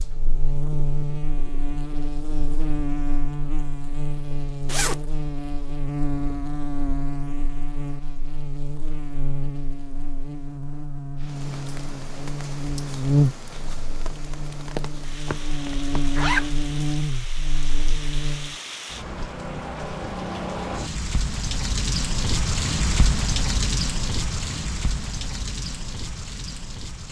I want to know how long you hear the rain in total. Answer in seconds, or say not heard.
16 s.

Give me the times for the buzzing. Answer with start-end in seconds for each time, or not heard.
0.0-18.6.